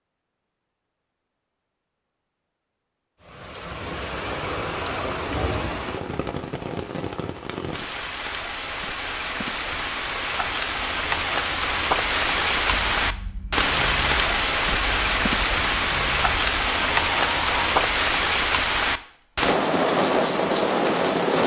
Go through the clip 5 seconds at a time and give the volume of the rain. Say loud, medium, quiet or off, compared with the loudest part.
medium, medium, loud, loud, loud.